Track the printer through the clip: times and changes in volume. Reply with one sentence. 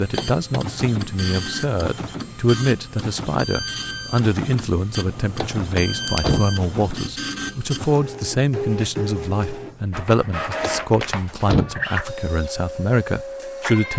The printer can be heard from 0.0 to 13.9 s, at a steady volume.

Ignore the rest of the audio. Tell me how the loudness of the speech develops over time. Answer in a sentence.
The volume of the speech stays about the same.